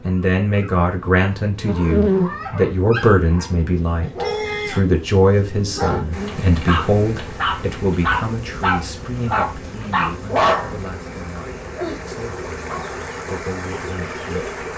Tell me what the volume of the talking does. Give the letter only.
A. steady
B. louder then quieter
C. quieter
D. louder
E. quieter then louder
C.